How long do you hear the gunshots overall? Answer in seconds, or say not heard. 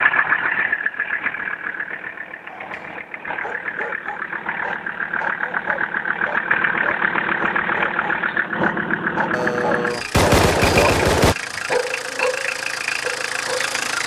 2 s.